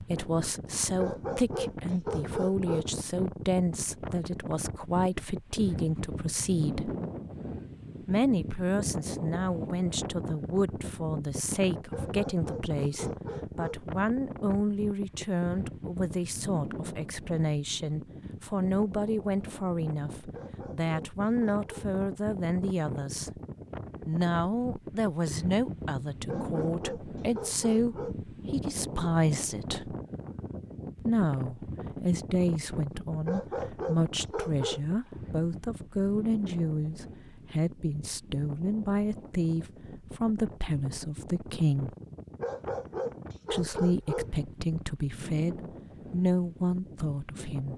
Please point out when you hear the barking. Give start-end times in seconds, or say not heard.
0.9-2.9, 11.9-13.8, 20.3-21.9, 26.2-28.1, 33.2-34.9, 42.4-44.3.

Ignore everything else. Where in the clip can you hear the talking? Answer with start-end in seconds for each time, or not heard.
0.0-6.9, 8.1-23.3, 24.1-29.9, 31.0-41.9, 43.5-47.7.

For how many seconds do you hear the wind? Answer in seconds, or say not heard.
48 s.